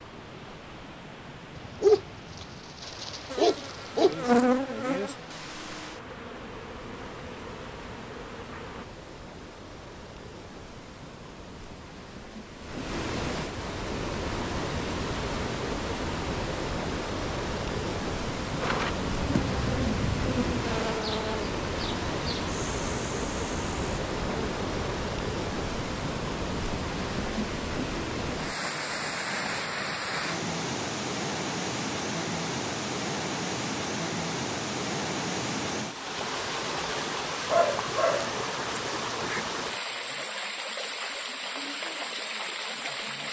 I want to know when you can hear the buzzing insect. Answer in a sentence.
You can hear the buzzing insect from 3.3 to 8.8 s and from 18.6 to 24.9 s.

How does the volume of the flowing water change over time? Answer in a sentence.
The volume of the flowing water goes up.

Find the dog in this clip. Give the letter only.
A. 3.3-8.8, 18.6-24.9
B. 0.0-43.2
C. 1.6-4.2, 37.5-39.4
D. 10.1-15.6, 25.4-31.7
C.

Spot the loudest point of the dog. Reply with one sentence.
The volume of the dog peaks at 2 seconds.